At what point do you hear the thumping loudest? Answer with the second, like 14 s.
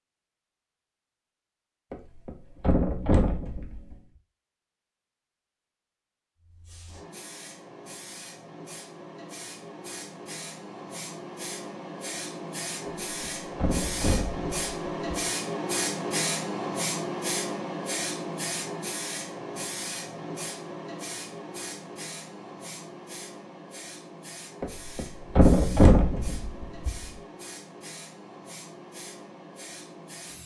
26 s.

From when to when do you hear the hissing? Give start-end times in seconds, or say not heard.
6.4-30.4.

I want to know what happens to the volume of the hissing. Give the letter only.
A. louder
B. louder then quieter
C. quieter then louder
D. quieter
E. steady
B.